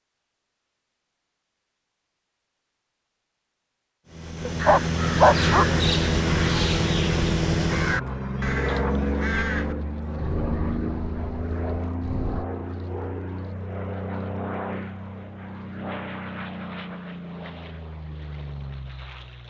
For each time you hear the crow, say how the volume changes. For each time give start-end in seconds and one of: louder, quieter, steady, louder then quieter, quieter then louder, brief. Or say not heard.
4.5-12.4 quieter.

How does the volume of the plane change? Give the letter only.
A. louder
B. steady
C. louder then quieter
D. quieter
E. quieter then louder
D.